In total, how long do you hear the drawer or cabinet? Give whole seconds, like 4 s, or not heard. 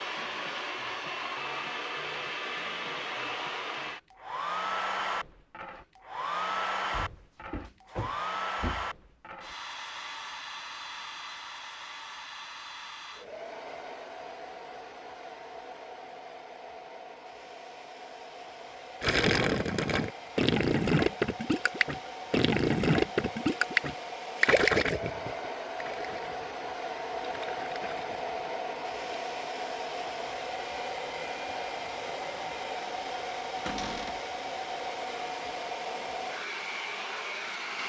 3 s.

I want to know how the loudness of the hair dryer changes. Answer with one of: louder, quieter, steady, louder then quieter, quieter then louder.
quieter then louder.